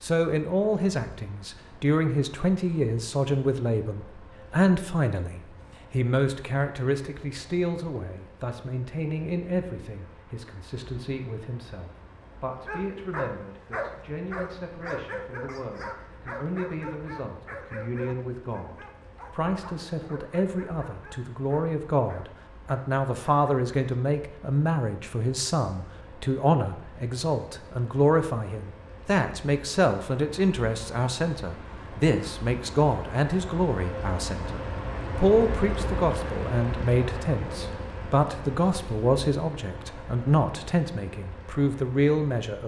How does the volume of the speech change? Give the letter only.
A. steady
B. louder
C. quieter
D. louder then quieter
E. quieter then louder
E.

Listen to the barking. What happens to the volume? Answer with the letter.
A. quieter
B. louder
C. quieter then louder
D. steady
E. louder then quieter
A.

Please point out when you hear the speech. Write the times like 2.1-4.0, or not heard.
0.0-42.6.